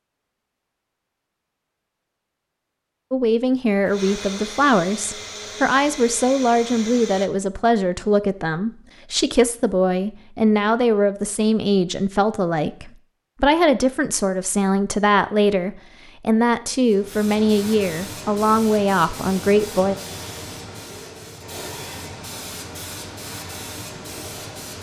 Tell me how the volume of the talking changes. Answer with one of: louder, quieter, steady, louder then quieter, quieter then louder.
steady.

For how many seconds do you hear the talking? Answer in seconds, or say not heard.
17 s.